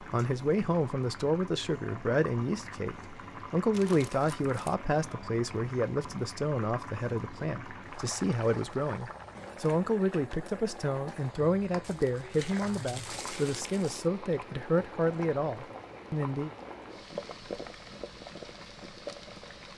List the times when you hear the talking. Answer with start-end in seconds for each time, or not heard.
0.0-16.5.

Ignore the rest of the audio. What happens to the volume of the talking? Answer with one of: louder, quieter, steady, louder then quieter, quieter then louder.
steady.